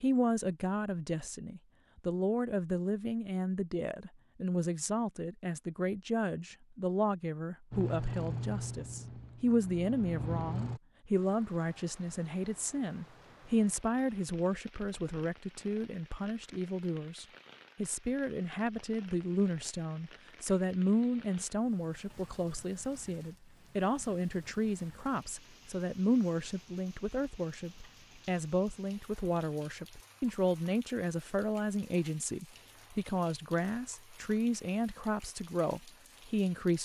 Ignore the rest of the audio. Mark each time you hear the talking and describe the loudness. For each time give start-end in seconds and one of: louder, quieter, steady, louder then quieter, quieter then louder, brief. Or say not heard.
0.0-36.8 steady.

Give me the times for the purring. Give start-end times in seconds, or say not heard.
7.7-10.8.